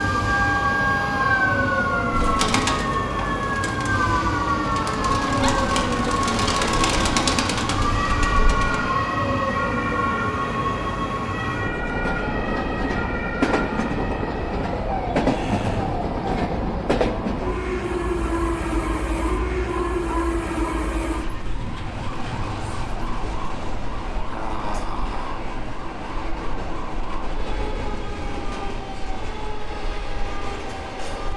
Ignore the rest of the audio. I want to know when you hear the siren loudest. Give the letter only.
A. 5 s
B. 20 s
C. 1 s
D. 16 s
C.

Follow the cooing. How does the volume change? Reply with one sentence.
The loudness of the cooing goes down, then up.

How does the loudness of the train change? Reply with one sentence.
The volume of the train goes down.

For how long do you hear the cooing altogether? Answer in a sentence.
You can hear the cooing for 7 seconds altogether.